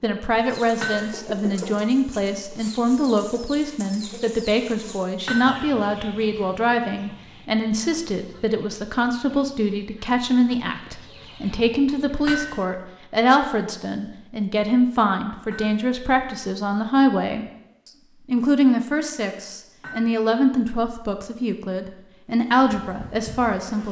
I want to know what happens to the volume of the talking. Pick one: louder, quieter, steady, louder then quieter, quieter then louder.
steady.